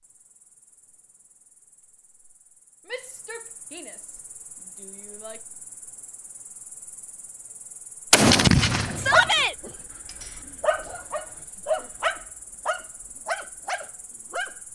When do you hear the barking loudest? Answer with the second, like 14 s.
9 s.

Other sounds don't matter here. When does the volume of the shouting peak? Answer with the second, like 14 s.
9 s.